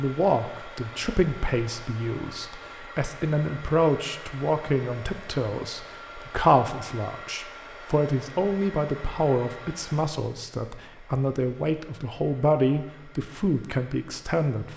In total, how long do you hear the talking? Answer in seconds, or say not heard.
15 s.